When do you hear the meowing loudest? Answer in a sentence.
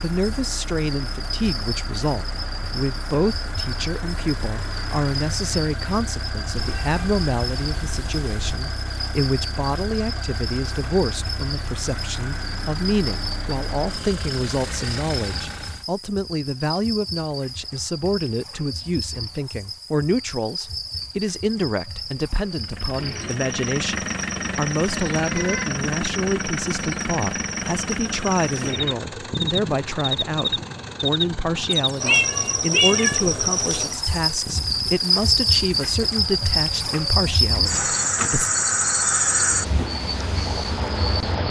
The loudest moment of the meowing is at 33 seconds.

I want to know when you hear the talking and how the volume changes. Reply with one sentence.
The talking can be heard from 0.0 to 38.5 s, at a steady volume.